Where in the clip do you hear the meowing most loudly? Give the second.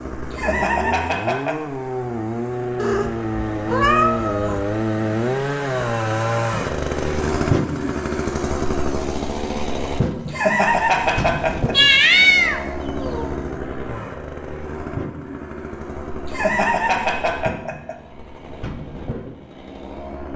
12 s.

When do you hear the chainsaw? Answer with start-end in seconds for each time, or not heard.
0.0-20.3.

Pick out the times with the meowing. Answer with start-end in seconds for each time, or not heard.
2.8-4.7, 11.7-13.3.